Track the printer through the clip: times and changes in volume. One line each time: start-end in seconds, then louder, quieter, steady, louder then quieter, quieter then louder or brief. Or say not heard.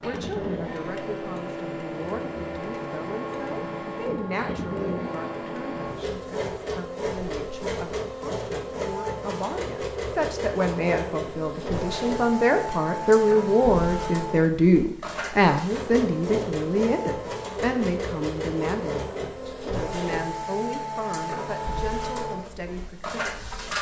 0.0-23.7 steady.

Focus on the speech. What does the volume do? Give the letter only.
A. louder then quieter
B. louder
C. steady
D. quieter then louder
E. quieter
A.